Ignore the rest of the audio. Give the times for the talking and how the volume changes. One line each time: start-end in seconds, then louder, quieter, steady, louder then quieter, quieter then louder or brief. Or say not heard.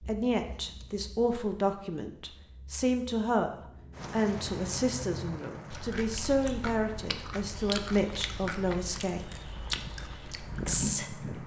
0.0-9.4 steady
10.7-11.4 brief.